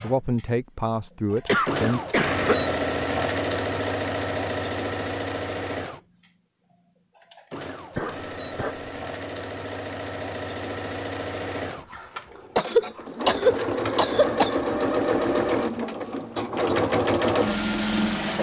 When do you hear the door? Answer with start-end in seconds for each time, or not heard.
not heard.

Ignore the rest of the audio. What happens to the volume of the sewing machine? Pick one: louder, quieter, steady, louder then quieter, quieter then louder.
quieter then louder.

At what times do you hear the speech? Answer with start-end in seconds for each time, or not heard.
0.0-2.0.